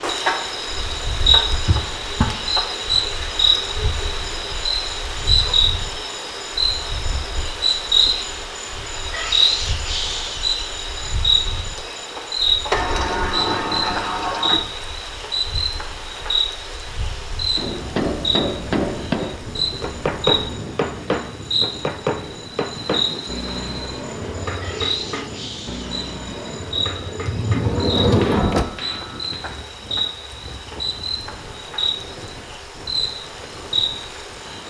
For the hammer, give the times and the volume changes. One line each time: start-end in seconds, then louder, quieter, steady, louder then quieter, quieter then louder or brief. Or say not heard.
17.6-29.5 quieter.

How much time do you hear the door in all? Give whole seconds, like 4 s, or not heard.
4 s.